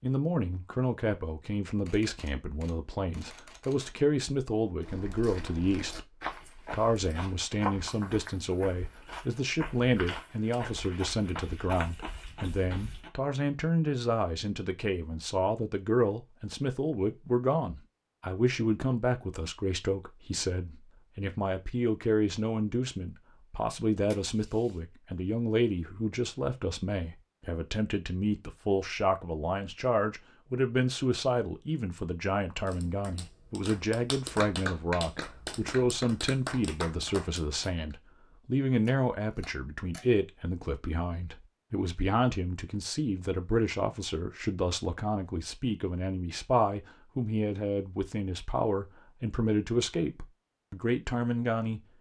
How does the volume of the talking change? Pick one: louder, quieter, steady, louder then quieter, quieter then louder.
steady.